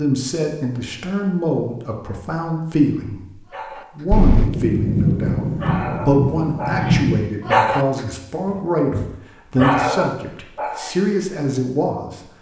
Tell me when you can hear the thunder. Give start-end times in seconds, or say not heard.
4.1-7.3.